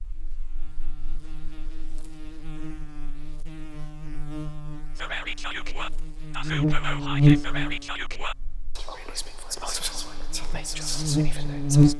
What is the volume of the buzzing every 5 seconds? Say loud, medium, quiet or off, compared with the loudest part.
quiet, loud, loud.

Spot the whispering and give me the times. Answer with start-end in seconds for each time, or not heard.
5.0-11.9.